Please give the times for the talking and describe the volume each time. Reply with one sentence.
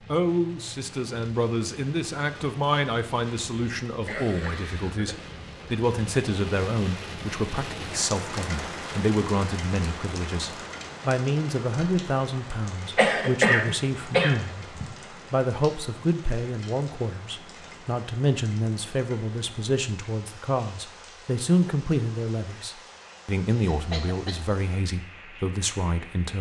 You can hear the talking from 0.1 to 26.3 s, at a steady volume.